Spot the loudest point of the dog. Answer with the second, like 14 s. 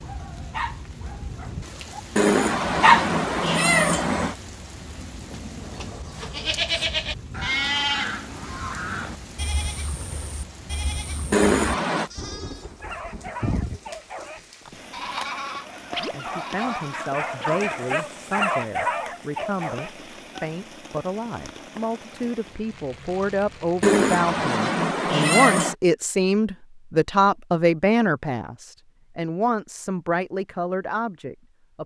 3 s.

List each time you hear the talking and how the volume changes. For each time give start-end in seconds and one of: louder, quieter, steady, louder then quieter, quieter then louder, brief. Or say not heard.
16.1-31.8 louder then quieter.